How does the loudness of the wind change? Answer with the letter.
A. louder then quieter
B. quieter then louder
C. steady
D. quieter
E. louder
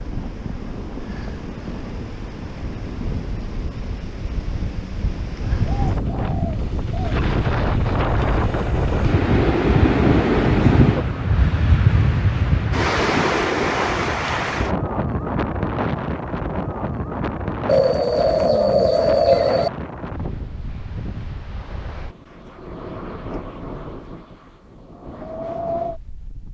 A.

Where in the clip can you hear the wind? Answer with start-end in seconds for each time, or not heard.
0.0-26.4.